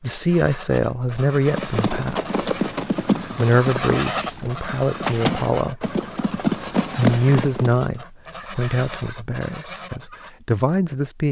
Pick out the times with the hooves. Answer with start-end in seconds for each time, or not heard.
1.4-7.8.